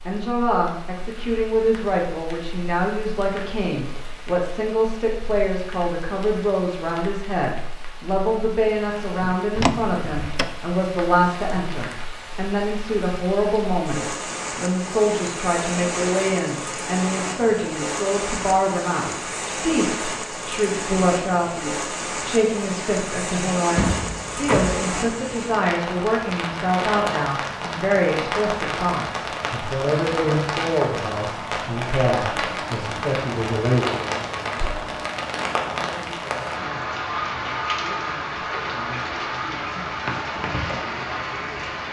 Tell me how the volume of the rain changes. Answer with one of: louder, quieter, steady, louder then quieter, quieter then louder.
louder.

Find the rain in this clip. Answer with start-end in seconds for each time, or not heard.
0.0-41.8.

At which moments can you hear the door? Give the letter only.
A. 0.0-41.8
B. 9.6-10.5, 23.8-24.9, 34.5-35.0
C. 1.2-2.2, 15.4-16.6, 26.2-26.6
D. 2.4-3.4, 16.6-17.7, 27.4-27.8
B.